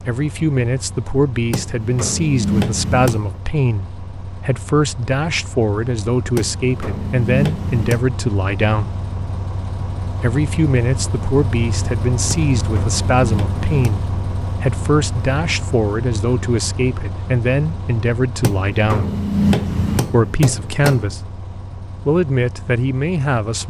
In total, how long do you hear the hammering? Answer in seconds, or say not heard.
8 s.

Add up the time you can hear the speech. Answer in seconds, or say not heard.
21 s.